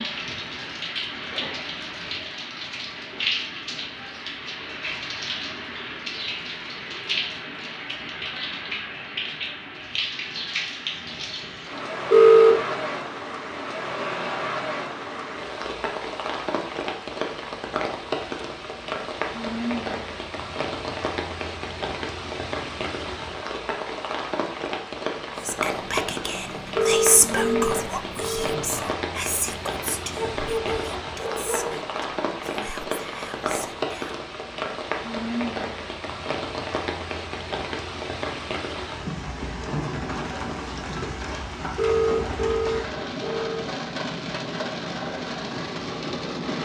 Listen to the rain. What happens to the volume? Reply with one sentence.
The loudness of the rain stays about the same.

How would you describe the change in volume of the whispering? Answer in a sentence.
The volume of the whispering goes down.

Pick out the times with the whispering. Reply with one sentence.
The whispering can be heard from 25.4 to 34.2 s.